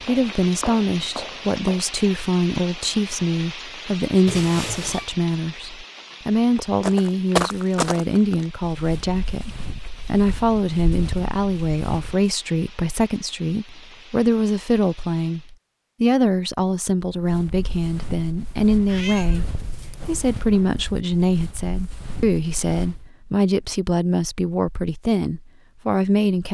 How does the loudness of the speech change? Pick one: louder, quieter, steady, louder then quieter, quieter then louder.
steady.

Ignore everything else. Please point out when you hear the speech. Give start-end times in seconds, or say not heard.
0.1-26.4.